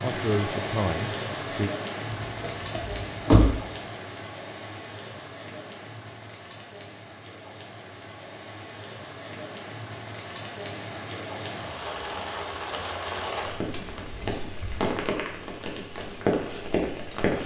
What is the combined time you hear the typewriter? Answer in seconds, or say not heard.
not heard.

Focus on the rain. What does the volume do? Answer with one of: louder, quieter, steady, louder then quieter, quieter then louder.
quieter then louder.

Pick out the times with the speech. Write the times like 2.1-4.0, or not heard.
0.0-1.7.